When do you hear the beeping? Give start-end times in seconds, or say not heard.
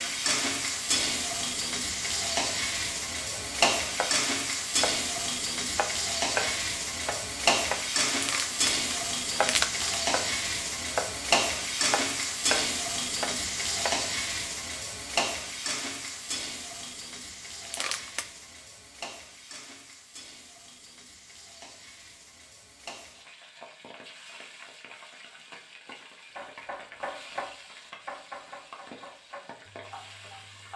not heard.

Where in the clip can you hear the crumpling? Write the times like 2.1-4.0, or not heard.
8.1-10.0, 17.6-18.2.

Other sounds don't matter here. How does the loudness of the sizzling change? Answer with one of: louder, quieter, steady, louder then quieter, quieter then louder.
quieter.